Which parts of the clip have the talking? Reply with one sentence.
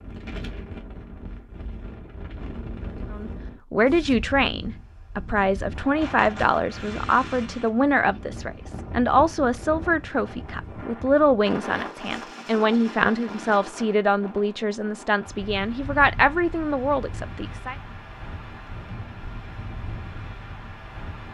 You can hear the talking from 3.1 to 17.8 s.